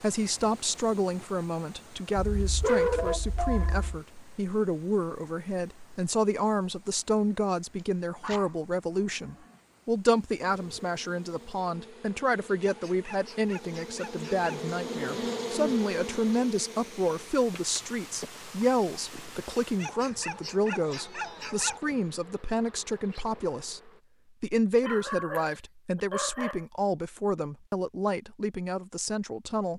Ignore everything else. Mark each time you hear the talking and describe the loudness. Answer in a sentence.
The talking can be heard from 0.0 to 29.7 s, at a steady volume.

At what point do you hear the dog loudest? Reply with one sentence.
The volume of the dog peaks at 3 seconds.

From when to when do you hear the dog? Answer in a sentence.
The dog can be heard from 2.1 to 4.0 s, from 7.8 to 9.6 s, from 12.6 to 14.6 s, from 19.8 to 21.8 s and from 24.8 to 26.6 s.